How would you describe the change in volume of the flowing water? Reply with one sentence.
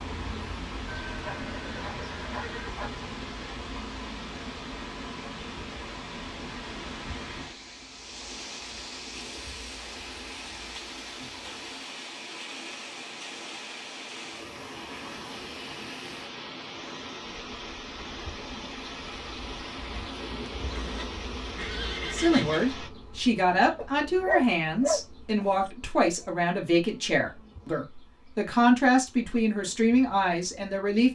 The loudness of the flowing water stays about the same.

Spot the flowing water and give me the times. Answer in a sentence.
The flowing water can be heard from 0.0 to 22.9 s.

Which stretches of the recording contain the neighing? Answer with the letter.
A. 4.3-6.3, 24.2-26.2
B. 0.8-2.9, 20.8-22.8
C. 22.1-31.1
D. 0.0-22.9
B.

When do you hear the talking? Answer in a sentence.
You can hear the talking from 22.1 to 31.1 s.